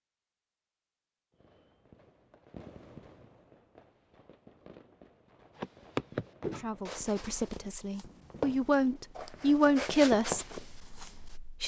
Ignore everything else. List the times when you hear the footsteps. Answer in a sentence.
You can hear the footsteps from 5.5 to 11.2 s.